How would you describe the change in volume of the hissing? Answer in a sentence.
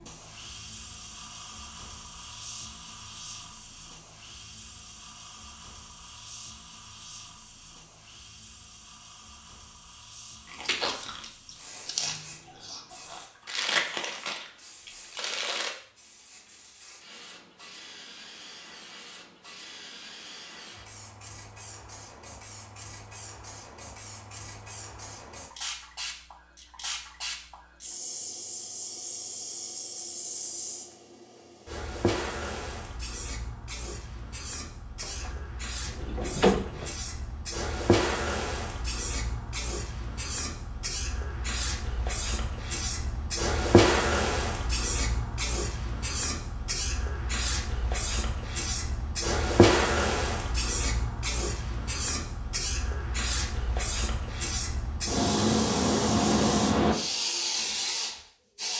The volume of the hissing goes up.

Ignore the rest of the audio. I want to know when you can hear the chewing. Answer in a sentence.
The chewing can be heard from 10.4 to 15.7 s.